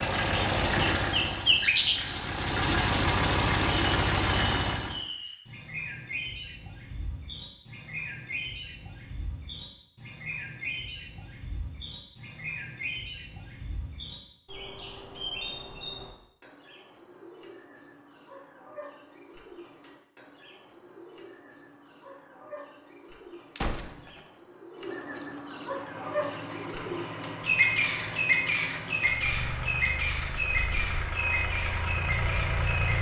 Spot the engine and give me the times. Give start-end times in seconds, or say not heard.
0.0-5.0, 25.6-32.9.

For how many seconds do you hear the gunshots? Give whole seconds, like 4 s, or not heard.
3 s.